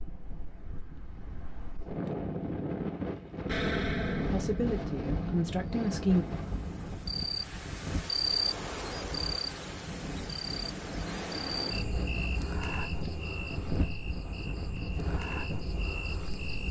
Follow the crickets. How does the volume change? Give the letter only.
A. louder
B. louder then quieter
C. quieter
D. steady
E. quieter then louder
C.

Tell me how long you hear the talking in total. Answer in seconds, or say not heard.
2 s.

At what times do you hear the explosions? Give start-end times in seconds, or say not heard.
3.5-4.8.